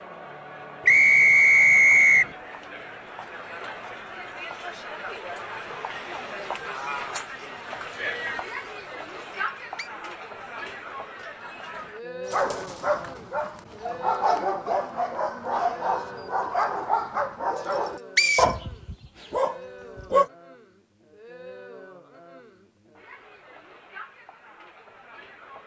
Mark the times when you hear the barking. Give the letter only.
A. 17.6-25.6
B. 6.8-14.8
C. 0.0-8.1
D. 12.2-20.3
D.